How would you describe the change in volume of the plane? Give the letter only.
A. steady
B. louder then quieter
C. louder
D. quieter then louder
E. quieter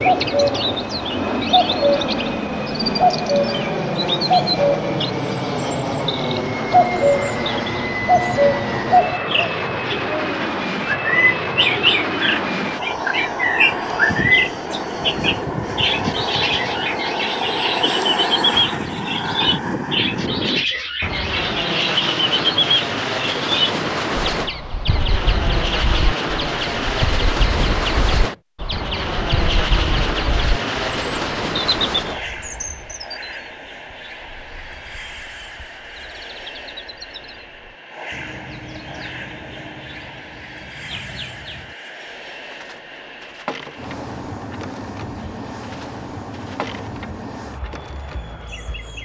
E.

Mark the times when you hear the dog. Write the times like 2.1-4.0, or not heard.
not heard.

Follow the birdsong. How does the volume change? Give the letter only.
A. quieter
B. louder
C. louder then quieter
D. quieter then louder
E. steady
A.